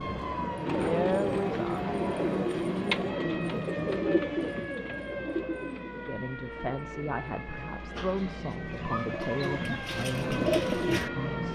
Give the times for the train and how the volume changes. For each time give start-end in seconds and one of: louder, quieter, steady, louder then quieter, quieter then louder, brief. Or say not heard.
0.0-11.5 quieter then louder.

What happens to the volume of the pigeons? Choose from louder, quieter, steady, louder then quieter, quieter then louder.
quieter then louder.